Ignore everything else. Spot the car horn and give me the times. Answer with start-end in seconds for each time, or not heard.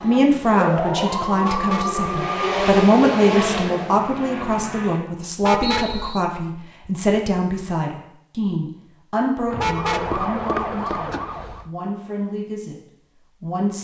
1.4-2.0, 5.4-6.2, 9.6-10.3.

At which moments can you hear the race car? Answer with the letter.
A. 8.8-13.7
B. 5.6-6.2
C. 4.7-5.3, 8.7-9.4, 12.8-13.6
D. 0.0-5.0
D.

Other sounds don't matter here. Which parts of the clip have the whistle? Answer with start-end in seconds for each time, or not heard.
5.6-6.2.